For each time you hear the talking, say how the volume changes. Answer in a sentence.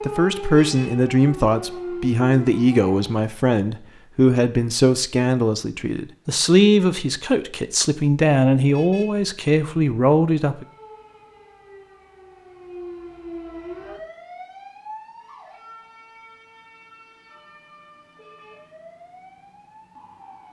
The talking can be heard from 0.1 to 10.7 s, at a steady volume.